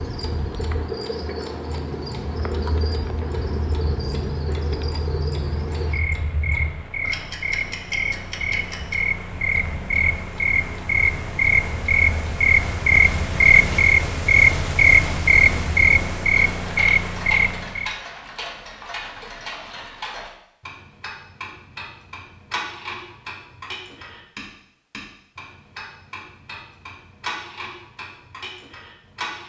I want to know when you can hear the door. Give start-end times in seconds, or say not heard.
not heard.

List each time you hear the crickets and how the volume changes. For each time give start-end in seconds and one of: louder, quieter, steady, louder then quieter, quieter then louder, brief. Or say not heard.
0.0-17.9 louder.